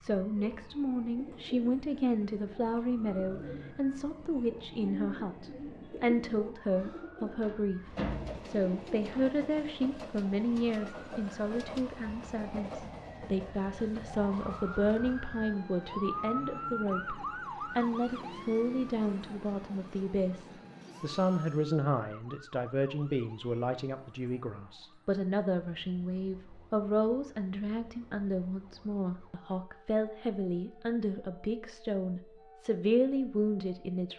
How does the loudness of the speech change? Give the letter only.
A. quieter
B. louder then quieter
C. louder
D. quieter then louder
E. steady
E.